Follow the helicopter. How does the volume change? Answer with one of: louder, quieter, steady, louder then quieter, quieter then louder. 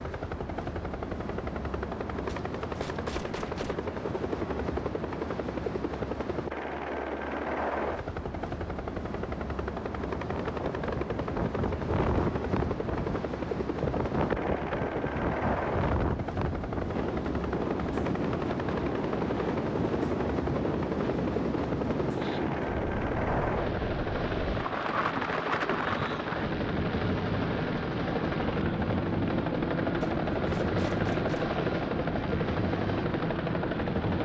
steady.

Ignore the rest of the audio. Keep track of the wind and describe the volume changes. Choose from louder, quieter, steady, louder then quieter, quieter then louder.
steady.